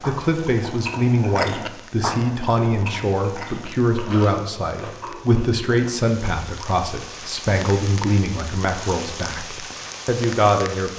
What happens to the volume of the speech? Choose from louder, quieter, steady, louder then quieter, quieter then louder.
steady.